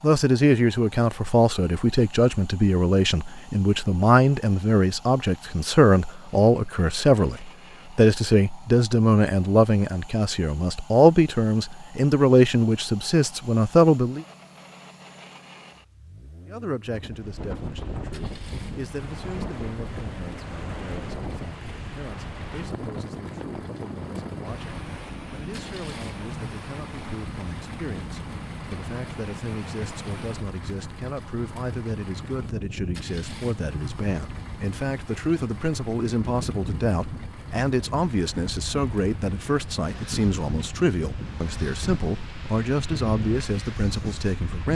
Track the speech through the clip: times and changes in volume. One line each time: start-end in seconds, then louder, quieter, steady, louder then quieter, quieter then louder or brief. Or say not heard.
0.0-14.2 steady
16.4-44.7 louder.